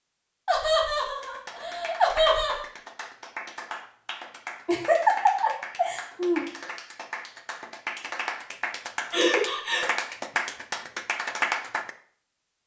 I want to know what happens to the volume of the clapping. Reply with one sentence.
The volume of the clapping goes up.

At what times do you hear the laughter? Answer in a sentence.
The laughter can be heard from 0.5 to 2.6 s, from 4.7 to 6.5 s and from 9.1 to 9.8 s.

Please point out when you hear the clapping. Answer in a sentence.
The clapping can be heard from 1.2 to 11.9 s.